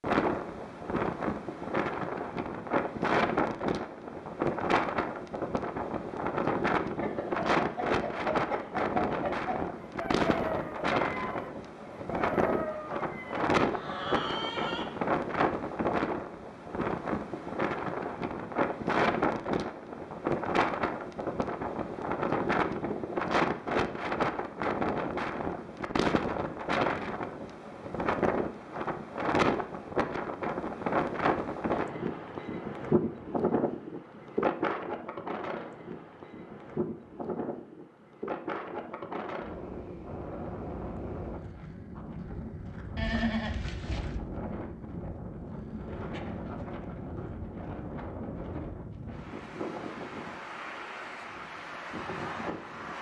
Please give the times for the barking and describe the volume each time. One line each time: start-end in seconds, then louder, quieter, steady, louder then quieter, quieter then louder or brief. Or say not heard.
not heard.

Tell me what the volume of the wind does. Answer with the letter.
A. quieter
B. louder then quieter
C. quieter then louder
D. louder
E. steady
A.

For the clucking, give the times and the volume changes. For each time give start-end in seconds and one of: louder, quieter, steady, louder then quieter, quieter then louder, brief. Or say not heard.
7.0-15.0 steady.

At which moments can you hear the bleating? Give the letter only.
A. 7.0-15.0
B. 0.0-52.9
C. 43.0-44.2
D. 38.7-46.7
C.